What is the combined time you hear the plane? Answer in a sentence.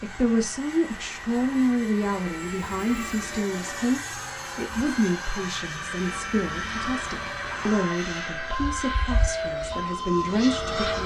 The plane can be heard for 11 seconds in total.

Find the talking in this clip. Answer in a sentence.
The talking can be heard from 0.0 to 11.0 s.